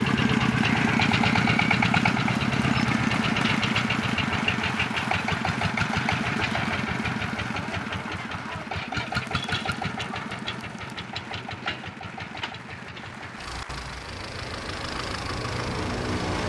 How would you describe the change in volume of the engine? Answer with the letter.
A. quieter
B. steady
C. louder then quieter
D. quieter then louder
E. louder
A.